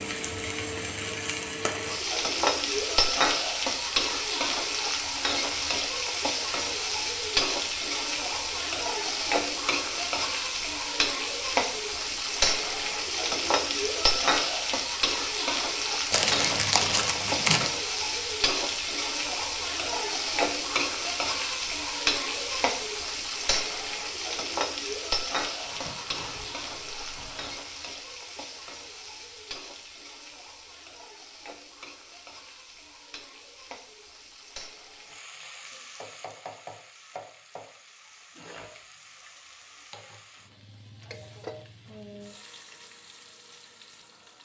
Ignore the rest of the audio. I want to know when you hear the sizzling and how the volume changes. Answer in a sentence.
The sizzling can be heard from 0.0 to 44.3 s, getting quieter.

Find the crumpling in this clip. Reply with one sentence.
You can hear the crumpling from 16.1 to 17.7 s and from 25.4 to 27.6 s.